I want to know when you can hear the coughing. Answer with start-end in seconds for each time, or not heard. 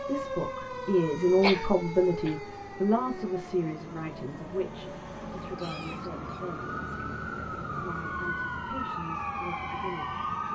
1.4-2.4, 5.5-6.4.